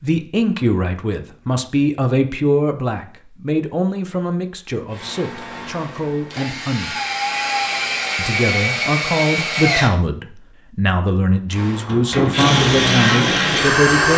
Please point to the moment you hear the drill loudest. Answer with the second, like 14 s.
13 s.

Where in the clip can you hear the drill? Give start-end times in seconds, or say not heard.
4.9-9.9, 11.5-14.1.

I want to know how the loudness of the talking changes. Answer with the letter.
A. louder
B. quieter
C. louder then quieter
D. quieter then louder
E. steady
D.